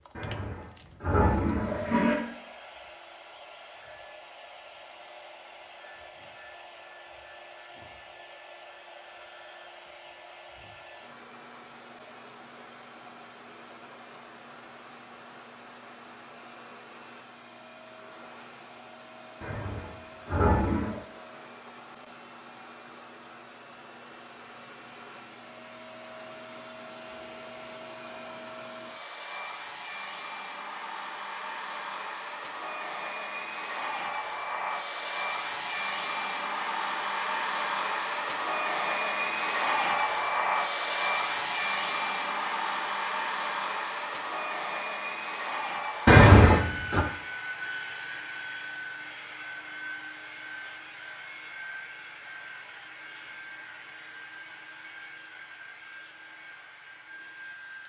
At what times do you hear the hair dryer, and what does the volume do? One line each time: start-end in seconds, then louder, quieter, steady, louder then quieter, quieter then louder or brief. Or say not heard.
0.0-57.8 louder then quieter.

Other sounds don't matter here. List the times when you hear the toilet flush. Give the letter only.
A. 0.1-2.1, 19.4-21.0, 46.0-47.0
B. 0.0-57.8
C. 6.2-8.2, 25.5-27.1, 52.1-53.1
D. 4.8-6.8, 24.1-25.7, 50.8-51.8
A.